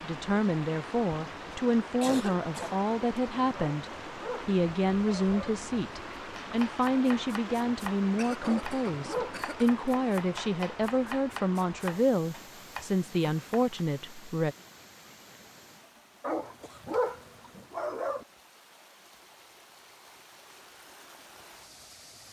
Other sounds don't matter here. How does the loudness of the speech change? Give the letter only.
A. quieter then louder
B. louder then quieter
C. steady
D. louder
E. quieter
C.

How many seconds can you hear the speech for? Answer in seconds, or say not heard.
14 s.